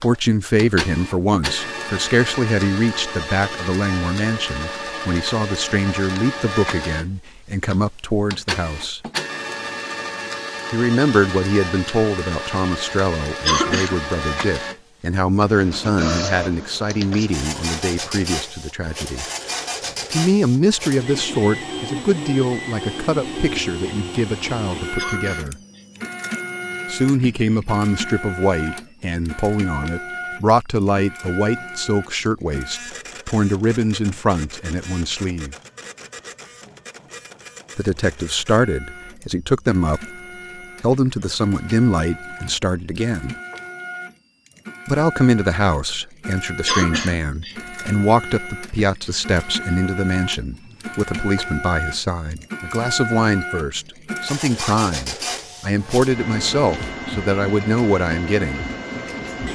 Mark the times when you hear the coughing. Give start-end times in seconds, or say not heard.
13.4-13.9, 24.9-25.9, 46.6-47.5.